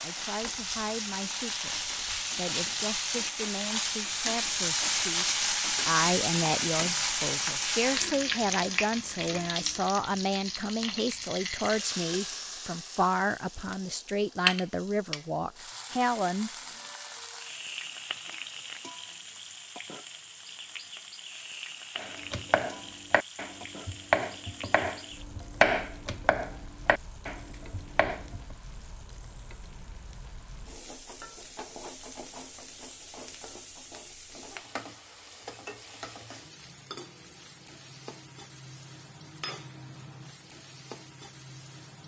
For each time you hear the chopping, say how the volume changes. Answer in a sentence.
The chopping can be heard from 21.9 to 28.4 s, getting louder then quieter.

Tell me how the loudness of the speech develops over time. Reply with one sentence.
The volume of the speech goes up.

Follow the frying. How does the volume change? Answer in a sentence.
The volume of the frying goes down.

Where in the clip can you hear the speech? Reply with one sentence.
You can hear the speech from 0.0 to 16.5 s.